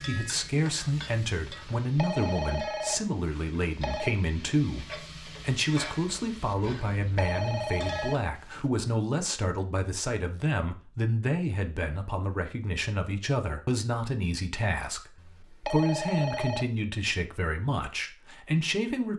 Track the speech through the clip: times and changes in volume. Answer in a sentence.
The speech can be heard from 0.0 to 19.1 s, at a steady volume.